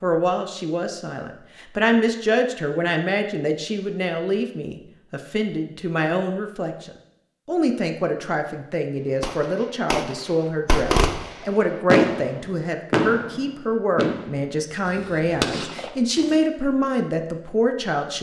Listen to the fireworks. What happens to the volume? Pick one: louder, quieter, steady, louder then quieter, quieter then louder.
louder then quieter.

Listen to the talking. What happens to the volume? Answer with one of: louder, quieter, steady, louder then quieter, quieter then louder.
steady.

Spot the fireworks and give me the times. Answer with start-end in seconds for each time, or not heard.
9.2-16.4.